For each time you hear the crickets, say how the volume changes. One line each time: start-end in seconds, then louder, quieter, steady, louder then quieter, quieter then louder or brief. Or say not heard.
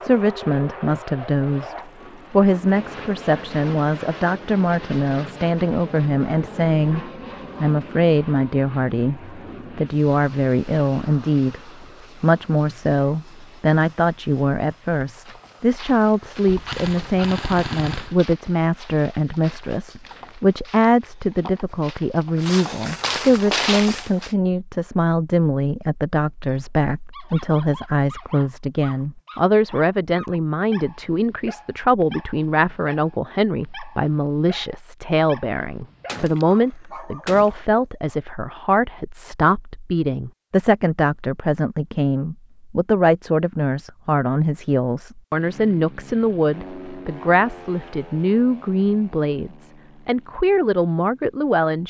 not heard.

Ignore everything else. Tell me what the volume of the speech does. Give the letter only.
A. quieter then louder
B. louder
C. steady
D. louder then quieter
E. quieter
C.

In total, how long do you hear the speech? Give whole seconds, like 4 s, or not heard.
52 s.